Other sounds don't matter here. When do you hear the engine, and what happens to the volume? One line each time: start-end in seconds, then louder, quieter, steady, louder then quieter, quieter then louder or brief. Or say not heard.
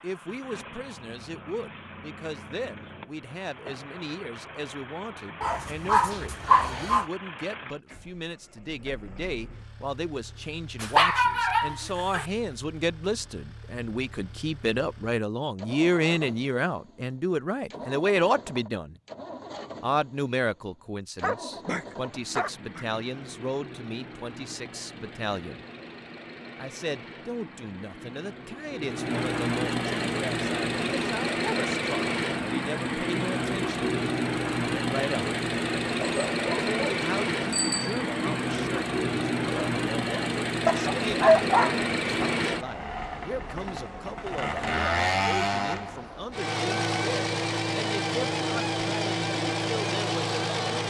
0.0-50.8 louder.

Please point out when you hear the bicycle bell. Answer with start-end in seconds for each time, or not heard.
37.5-38.0.